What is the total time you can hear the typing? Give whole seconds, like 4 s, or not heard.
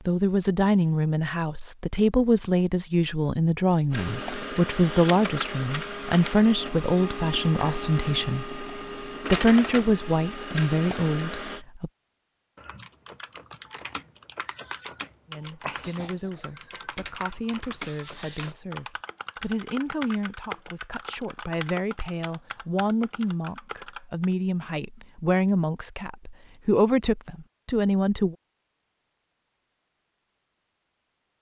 12 s.